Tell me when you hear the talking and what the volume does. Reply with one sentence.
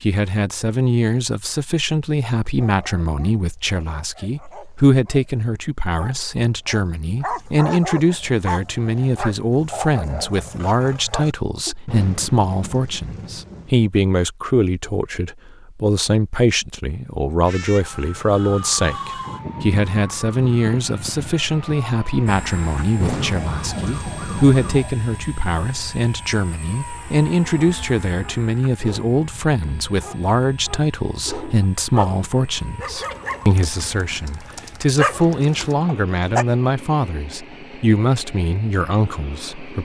You can hear the talking from 0.0 to 39.8 s, at a steady volume.